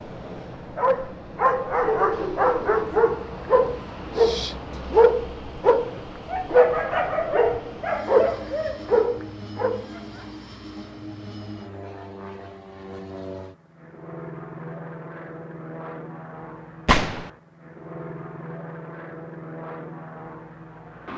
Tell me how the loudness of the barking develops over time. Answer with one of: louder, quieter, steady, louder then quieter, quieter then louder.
steady.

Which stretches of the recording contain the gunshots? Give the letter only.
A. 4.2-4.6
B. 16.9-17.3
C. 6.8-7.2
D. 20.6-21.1
B.